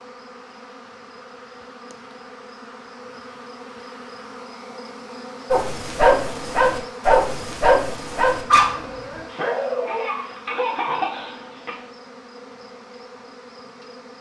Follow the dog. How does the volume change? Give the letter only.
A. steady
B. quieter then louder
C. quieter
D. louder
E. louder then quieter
C.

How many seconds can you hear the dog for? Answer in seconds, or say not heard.
6 s.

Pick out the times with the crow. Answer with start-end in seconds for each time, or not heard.
not heard.